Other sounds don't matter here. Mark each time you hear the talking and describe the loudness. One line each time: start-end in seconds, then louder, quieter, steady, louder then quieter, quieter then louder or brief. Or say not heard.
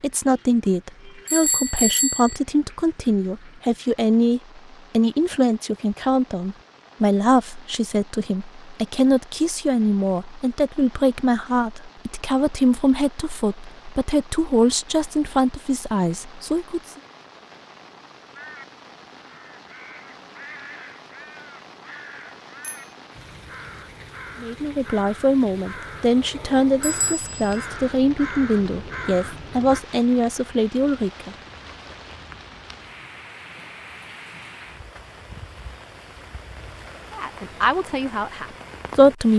0.0-16.8 steady
24.4-31.4 steady
37.1-39.3 brief.